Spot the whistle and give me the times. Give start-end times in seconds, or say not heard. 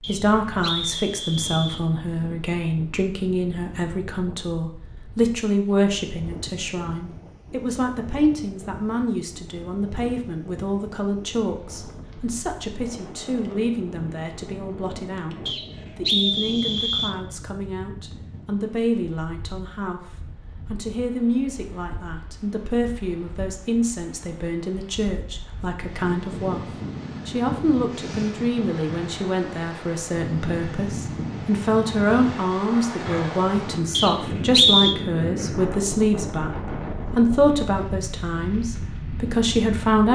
0.0-1.9, 15.4-17.1, 33.9-35.0.